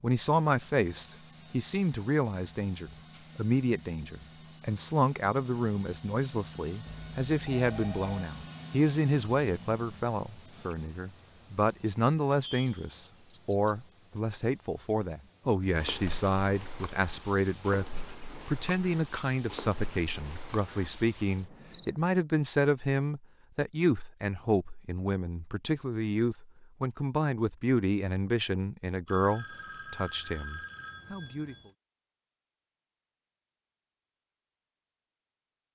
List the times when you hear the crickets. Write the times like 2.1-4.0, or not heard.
0.1-21.9.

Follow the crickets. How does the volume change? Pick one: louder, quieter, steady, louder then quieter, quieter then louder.
louder then quieter.